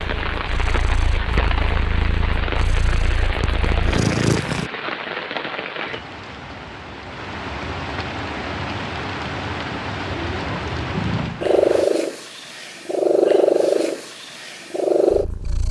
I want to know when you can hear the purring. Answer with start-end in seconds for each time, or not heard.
0.0-4.7, 10.9-15.6.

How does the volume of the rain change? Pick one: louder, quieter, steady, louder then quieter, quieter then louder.
steady.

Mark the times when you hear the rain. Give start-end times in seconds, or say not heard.
0.0-11.9.